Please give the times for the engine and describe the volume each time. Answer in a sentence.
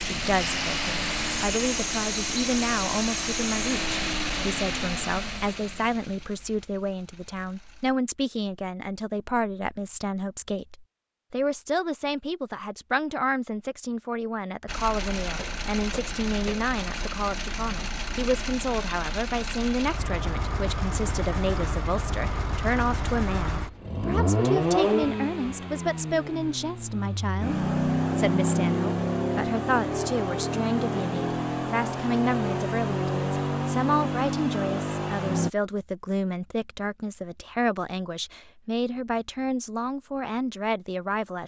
You can hear the engine from 0.0 to 8.0 s, getting quieter; and from 14.7 to 35.5 s, getting louder.